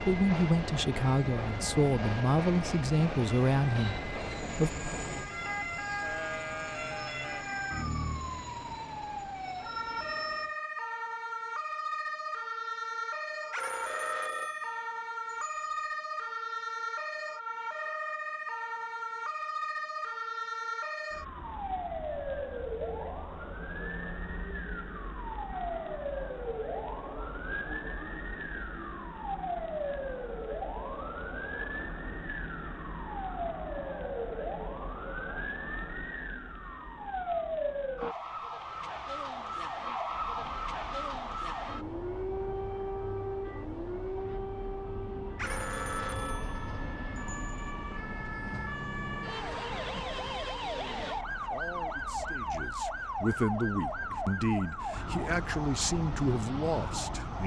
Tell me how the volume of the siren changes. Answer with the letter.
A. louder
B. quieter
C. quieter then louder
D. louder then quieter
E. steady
E.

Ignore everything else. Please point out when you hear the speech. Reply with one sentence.
The speech can be heard from 0.0 to 4.9 s and from 50.7 to 57.4 s.